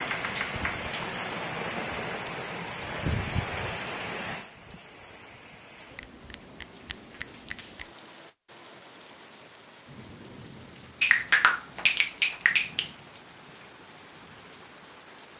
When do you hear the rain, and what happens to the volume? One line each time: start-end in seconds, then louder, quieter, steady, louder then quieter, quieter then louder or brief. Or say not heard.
0.0-15.3 quieter.